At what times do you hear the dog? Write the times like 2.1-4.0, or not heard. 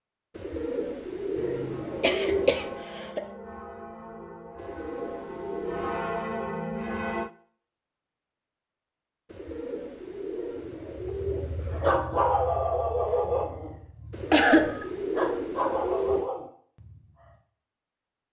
10.7-17.4.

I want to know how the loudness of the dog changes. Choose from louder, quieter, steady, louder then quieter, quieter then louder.
quieter then louder.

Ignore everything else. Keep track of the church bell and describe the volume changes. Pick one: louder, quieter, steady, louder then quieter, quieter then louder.
louder.